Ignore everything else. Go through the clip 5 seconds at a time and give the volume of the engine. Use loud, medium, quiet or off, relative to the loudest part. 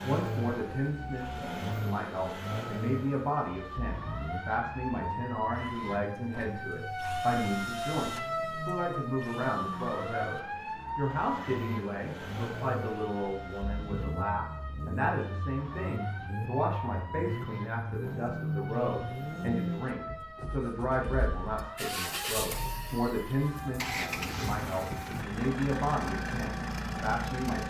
loud, medium, medium, loud, loud, loud.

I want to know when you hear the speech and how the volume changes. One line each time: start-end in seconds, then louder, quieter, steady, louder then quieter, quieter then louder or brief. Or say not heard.
0.0-27.6 steady.